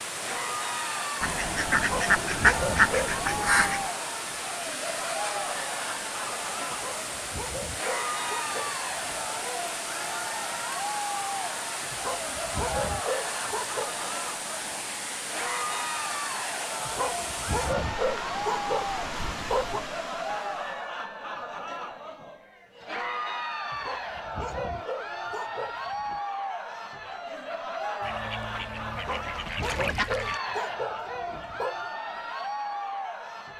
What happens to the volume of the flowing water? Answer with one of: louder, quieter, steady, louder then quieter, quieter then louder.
steady.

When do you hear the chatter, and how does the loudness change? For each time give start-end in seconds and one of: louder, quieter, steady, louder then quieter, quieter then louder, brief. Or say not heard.
0.1-33.5 steady.